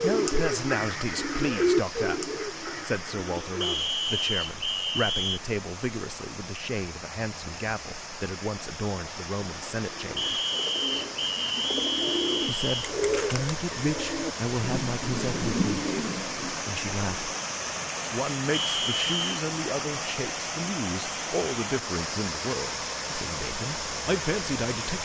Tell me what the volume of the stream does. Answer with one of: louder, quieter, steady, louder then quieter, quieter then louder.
louder.